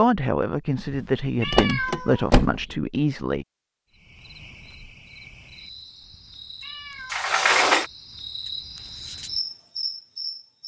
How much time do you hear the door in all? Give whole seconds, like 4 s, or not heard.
2 s.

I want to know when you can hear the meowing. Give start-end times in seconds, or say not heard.
0.8-2.3, 6.0-7.2.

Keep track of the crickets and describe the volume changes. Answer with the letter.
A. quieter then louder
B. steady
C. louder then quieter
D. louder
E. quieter
D.